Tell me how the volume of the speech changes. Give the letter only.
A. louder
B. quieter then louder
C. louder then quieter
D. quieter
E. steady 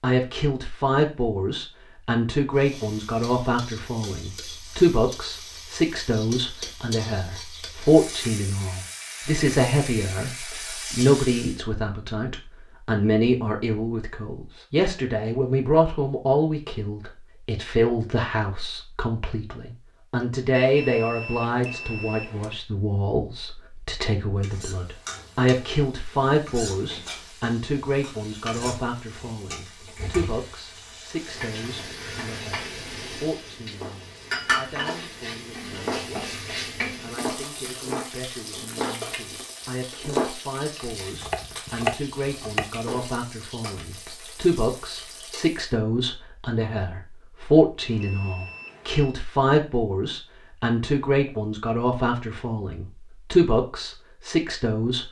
B.